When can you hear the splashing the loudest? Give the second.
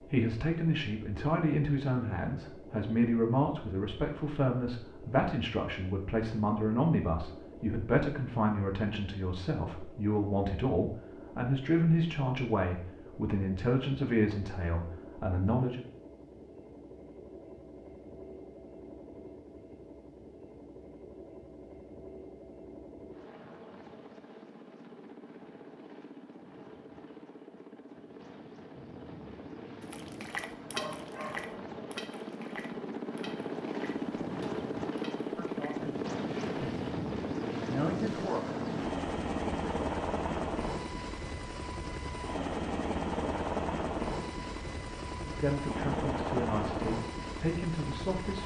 31 s.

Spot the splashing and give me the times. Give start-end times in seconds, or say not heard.
29.8-37.0.